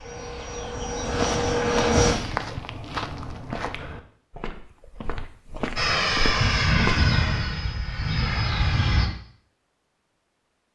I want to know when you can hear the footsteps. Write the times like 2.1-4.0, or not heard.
1.0-7.1.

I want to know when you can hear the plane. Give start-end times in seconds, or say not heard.
0.0-2.1, 5.8-9.1.